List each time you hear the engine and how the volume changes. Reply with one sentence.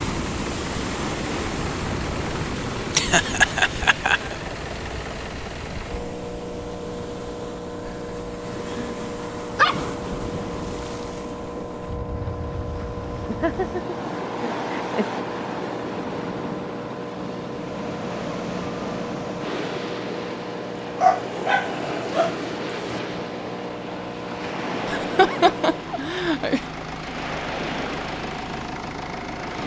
You can hear the engine from 0.0 to 29.6 s, at a steady volume.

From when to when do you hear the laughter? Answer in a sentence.
You can hear the laughter from 3.0 to 4.3 s, from 13.2 to 15.1 s and from 24.9 to 26.6 s.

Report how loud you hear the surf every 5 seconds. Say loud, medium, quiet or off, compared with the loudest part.
loud, medium, loud, loud, loud, loud.